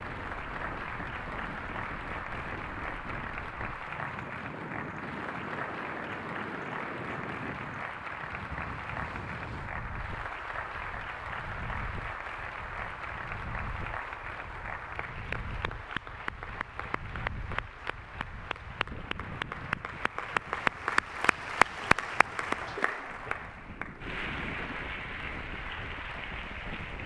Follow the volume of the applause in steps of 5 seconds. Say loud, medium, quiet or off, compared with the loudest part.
medium, medium, medium, medium, loud, medium.